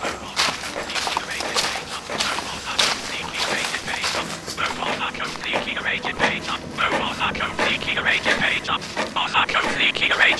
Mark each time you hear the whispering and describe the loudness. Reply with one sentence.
You can hear the whispering from 0.0 to 10.3 s, getting louder.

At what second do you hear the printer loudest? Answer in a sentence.
The volume of the printer peaks at 8 seconds.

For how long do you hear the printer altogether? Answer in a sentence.
The printer can be heard for 10 seconds in total.